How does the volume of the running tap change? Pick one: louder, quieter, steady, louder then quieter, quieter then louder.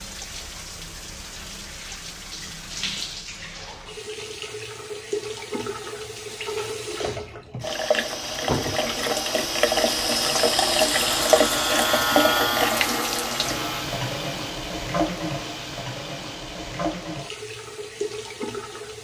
louder then quieter.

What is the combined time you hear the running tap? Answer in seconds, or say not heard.
19 s.